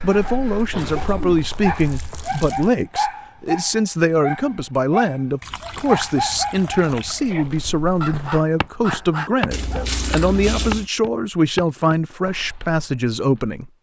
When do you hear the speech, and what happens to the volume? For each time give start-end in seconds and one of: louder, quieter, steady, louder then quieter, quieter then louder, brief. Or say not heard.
0.0-13.7 steady.